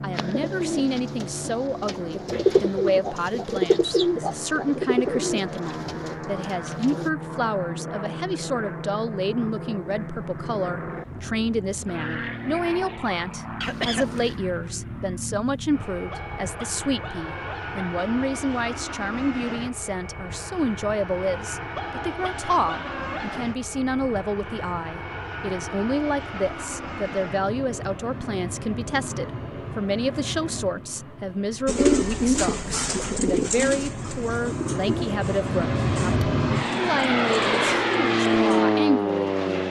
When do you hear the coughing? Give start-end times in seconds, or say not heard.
13.6-14.3.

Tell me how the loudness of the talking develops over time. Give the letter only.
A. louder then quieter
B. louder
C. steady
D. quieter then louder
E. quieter
C.